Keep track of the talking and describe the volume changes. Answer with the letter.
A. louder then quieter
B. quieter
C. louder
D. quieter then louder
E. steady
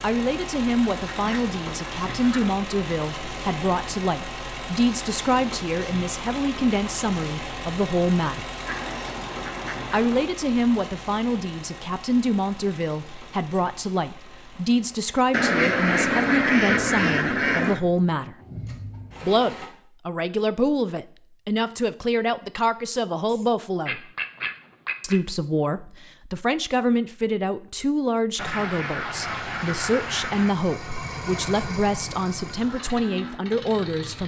E.